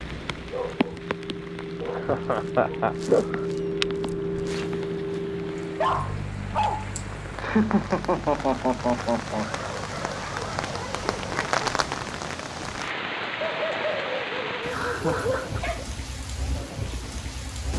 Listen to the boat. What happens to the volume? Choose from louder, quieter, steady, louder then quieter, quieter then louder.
louder then quieter.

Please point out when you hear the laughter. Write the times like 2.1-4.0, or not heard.
1.9-3.5, 7.4-9.7, 14.5-15.6.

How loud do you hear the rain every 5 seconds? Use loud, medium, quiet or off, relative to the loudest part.
medium, medium, loud, medium.